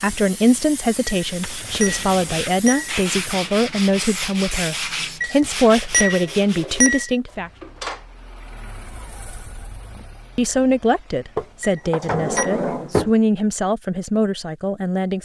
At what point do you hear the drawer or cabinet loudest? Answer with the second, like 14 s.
13 s.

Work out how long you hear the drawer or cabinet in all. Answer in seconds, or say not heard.
5 s.